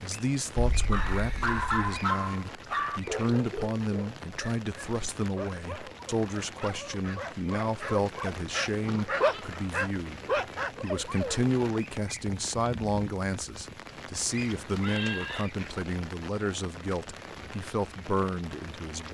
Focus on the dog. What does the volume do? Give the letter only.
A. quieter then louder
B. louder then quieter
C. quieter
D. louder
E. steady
A.